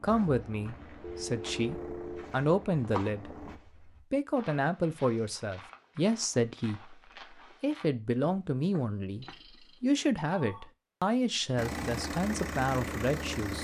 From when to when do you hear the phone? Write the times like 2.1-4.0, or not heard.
1.0-2.3, 9.2-10.7.